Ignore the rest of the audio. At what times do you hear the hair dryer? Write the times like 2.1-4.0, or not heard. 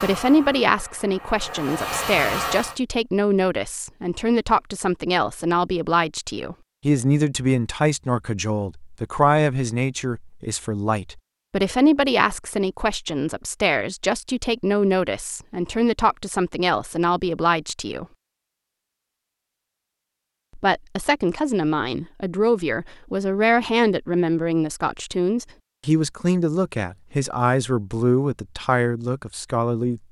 0.0-2.8.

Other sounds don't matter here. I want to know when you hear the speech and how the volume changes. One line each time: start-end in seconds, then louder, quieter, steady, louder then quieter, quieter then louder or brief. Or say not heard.
0.0-18.1 steady
20.6-30.0 steady.